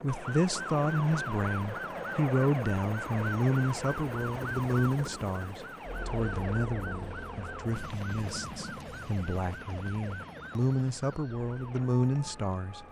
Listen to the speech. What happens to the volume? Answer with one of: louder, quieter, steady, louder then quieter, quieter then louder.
quieter then louder.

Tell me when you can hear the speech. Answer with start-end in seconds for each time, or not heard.
0.0-12.8.